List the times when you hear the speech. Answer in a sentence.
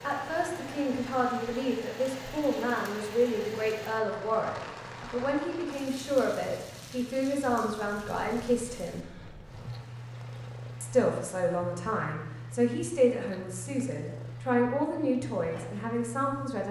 The speech can be heard from 0.0 to 9.1 s and from 10.8 to 16.6 s.